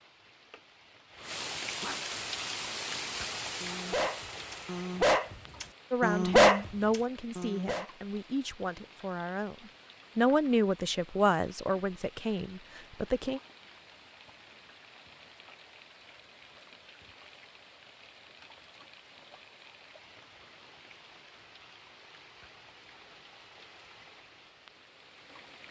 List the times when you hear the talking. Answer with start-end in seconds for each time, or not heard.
5.9-9.6, 10.2-13.4.